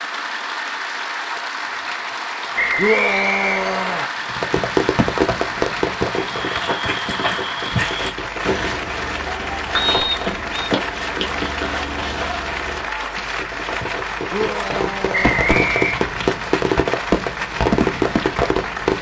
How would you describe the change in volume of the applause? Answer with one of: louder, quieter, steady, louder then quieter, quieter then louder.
steady.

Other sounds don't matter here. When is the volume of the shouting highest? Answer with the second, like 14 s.
3 s.